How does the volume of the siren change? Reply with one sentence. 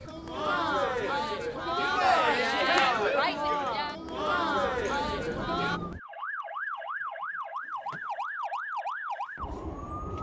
The volume of the siren goes up.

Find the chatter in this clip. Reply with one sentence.
You can hear the chatter from 0.1 to 5.8 s.